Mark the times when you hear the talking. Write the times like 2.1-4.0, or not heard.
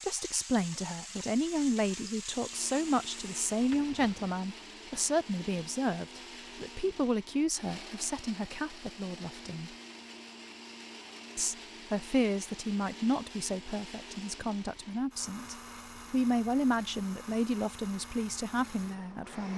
0.0-9.7, 11.3-19.5.